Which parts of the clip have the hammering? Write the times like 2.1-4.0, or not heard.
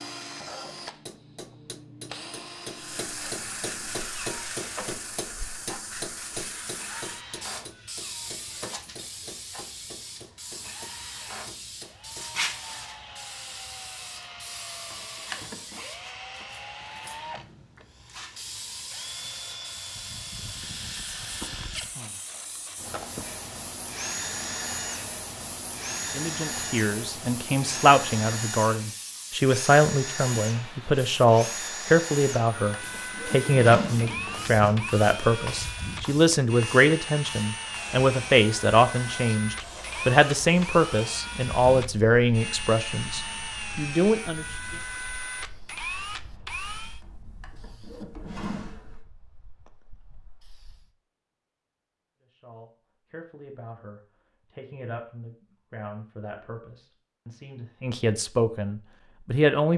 0.8-12.5.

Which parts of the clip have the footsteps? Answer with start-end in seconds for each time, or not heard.
not heard.